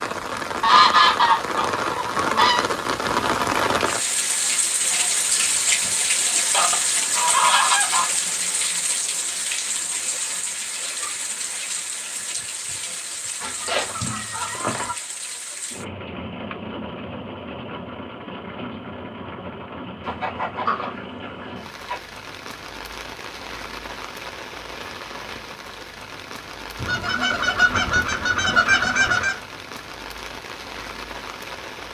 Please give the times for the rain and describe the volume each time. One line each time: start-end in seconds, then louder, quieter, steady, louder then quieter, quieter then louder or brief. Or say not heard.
0.0-31.8 quieter.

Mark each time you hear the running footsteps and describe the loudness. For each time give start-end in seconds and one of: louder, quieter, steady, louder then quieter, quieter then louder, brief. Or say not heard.
not heard.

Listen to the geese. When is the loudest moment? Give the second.
1 s.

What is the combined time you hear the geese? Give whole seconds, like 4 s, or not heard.
10 s.